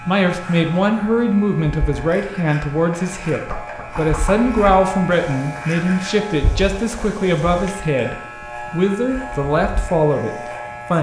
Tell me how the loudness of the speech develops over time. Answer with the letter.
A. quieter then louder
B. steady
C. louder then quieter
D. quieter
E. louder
B.